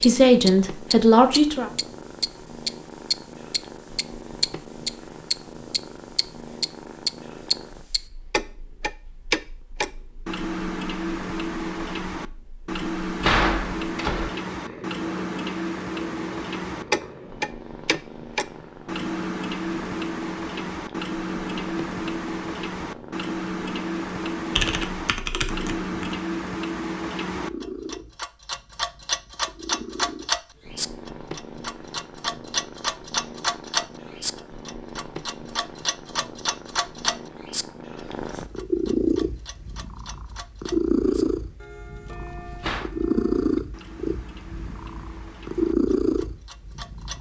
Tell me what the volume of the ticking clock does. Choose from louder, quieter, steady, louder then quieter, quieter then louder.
quieter.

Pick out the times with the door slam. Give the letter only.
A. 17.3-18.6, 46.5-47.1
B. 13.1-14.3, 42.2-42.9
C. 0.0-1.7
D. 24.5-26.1
B.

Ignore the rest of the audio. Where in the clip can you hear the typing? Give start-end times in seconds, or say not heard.
24.5-26.1.